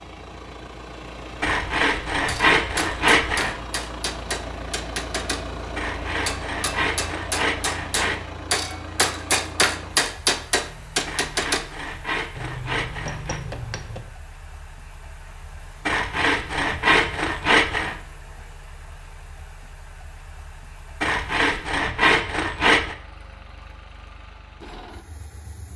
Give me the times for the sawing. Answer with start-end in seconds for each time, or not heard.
1.4-3.5, 5.8-8.2, 11.1-13.4, 15.8-17.9, 21.0-22.9.